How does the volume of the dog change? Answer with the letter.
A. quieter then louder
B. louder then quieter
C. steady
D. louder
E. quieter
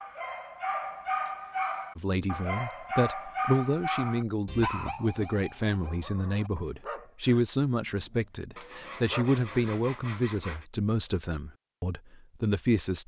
E.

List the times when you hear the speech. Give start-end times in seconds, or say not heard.
1.9-13.0.